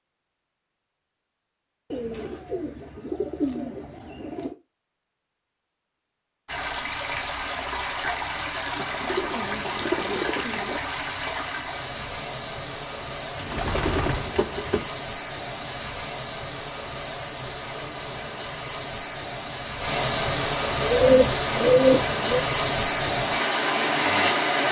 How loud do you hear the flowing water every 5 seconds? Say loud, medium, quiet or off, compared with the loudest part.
off, medium, medium, medium, loud.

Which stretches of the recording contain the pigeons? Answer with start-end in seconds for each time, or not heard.
1.9-4.5, 8.8-10.8, 13.3-14.9, 20.8-22.4.